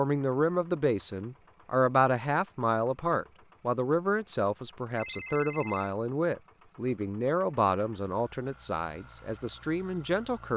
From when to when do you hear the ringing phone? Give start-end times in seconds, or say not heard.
5.0-5.9.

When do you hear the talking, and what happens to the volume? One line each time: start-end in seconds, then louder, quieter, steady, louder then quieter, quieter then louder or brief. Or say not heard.
0.0-10.5 quieter.